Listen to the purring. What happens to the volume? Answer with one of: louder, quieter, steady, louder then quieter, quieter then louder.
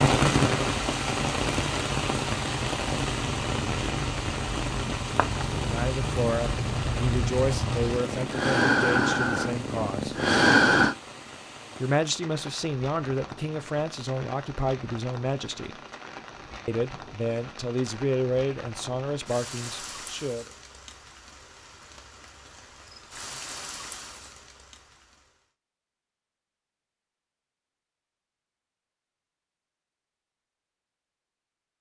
louder.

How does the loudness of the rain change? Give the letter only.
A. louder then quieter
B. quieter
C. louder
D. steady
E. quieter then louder
B.